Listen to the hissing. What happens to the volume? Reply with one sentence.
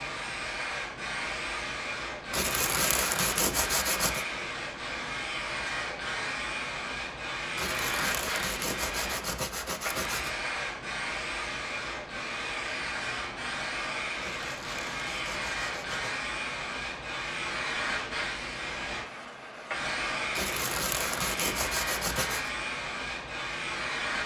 The volume of the hissing stays about the same.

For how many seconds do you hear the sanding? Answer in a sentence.
The sanding can be heard for 9 seconds in total.